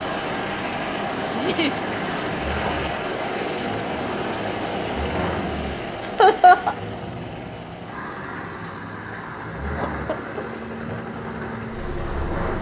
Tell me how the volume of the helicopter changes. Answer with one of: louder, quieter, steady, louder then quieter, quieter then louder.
quieter then louder.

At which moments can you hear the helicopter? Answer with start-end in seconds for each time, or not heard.
0.0-12.5.